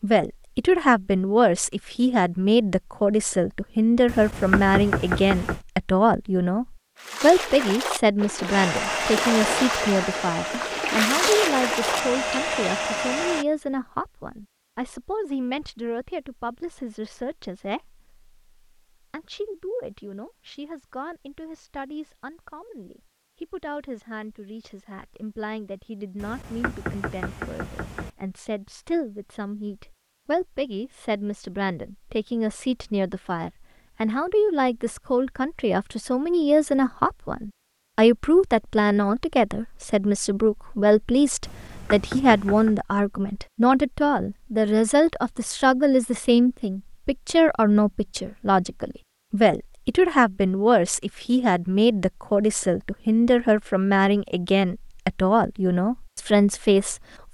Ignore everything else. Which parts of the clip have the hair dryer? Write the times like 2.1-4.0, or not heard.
8.5-13.4.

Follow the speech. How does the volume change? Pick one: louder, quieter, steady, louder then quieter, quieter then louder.
quieter then louder.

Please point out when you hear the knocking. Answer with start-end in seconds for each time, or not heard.
4.0-5.6, 26.1-28.1, 41.5-42.8.